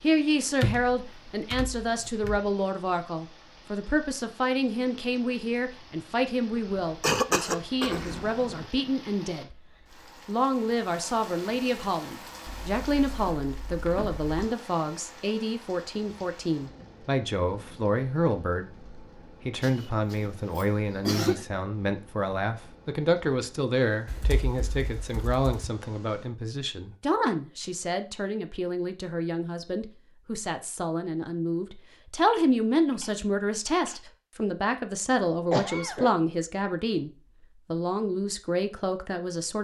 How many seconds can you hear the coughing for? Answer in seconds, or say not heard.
4 s.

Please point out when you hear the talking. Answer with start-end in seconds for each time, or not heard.
0.0-9.6, 10.2-37.1, 37.7-39.5.